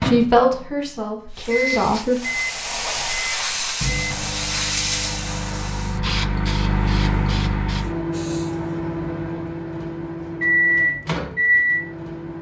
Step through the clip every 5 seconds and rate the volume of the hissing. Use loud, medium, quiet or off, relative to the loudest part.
loud, medium, off.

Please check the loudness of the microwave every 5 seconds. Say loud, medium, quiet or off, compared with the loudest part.
medium, medium, loud.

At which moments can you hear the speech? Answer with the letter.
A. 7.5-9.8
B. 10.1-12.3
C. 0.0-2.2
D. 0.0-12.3
C.